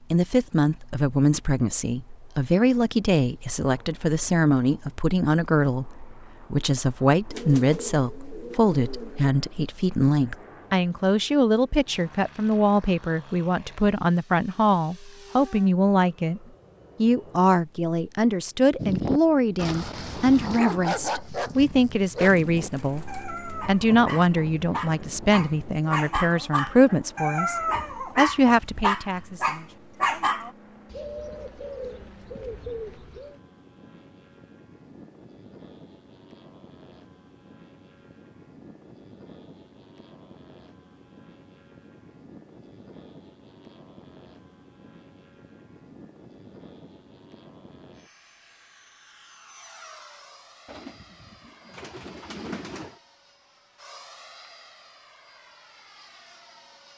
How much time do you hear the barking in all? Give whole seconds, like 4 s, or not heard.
12 s.